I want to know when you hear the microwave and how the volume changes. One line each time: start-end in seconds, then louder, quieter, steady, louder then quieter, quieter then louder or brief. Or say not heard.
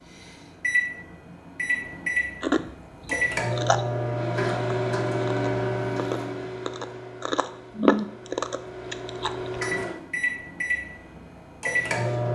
0.1-12.3 quieter then louder.